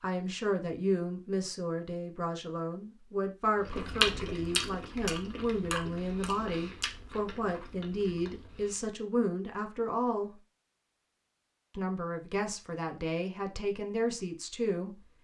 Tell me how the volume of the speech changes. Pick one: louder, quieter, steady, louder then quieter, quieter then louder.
steady.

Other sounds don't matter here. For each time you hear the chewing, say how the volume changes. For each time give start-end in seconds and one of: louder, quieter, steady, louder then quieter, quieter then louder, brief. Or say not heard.
3.6-8.8 quieter.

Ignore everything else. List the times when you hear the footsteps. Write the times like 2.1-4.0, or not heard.
not heard.